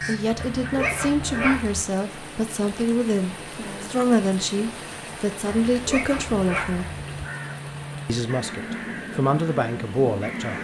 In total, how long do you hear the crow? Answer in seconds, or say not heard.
6 s.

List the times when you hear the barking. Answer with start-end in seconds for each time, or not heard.
0.3-1.8, 5.7-6.9.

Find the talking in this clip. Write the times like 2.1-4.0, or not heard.
0.1-7.0, 8.1-10.5.